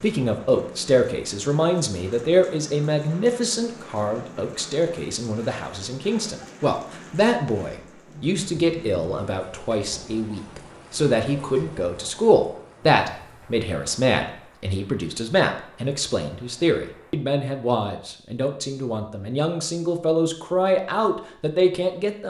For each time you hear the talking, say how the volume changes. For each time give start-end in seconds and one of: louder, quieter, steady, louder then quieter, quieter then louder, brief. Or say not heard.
0.0-22.2 steady.